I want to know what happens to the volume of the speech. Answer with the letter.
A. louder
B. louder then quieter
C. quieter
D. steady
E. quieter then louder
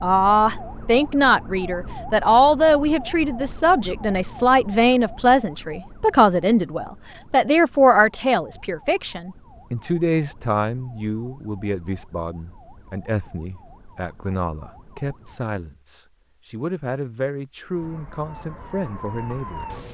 C.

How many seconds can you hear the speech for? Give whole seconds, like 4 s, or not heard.
20 s.